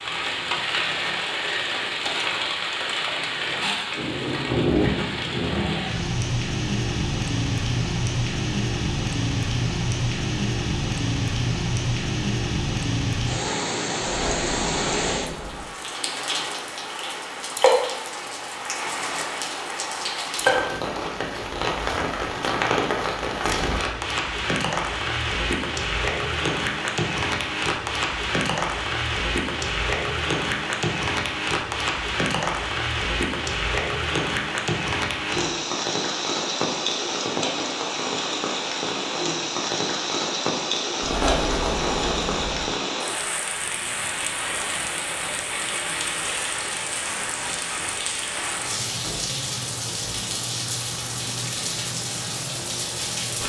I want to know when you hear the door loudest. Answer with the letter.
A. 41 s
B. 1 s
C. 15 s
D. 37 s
A.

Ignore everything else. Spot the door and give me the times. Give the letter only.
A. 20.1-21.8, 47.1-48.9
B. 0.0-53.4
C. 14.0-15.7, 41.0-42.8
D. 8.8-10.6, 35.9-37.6
C.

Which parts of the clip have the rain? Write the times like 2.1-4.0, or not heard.
0.0-53.4.